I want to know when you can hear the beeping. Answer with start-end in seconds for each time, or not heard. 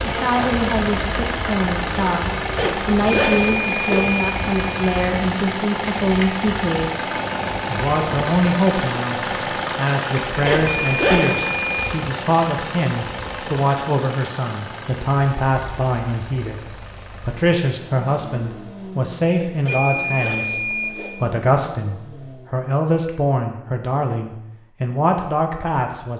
3.1-5.1, 10.7-11.9, 19.6-21.3.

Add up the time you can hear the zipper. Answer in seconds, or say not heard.
4 s.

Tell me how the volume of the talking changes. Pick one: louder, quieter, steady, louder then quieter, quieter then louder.
steady.